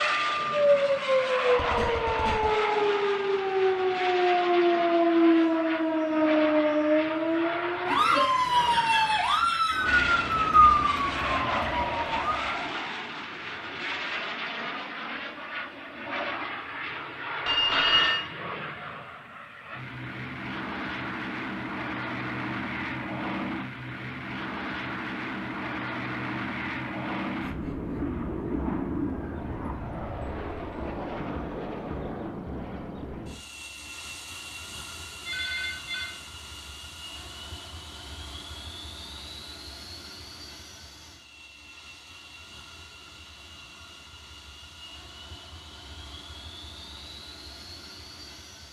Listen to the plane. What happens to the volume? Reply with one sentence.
The volume of the plane goes down.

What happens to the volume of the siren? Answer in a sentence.
The volume of the siren stays about the same.